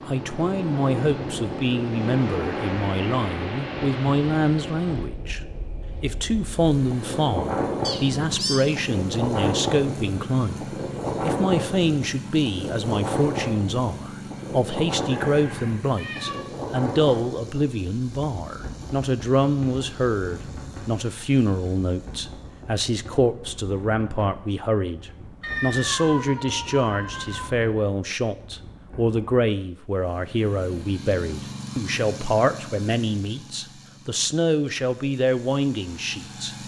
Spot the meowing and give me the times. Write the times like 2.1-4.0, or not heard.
7.8-8.7, 15.1-16.4, 25.4-27.4.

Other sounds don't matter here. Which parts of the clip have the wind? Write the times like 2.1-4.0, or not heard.
0.0-29.4.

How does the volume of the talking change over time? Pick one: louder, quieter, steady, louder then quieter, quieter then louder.
steady.